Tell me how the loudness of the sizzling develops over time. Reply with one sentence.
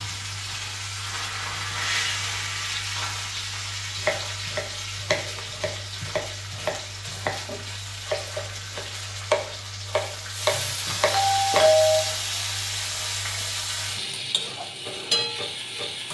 The loudness of the sizzling goes down, then up.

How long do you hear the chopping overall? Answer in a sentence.
The chopping can be heard for 8 seconds in total.